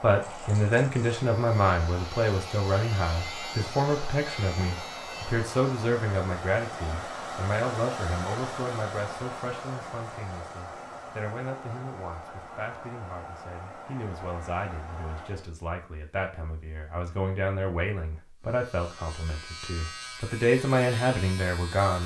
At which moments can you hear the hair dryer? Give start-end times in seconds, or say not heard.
0.0-15.5.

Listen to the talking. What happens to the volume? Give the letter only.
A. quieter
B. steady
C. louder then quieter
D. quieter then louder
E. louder
D.